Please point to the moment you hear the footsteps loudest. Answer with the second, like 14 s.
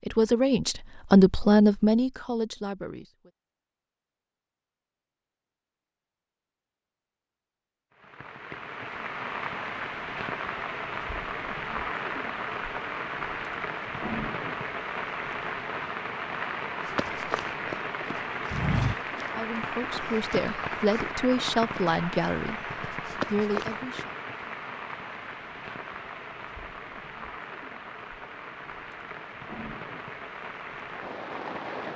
19 s.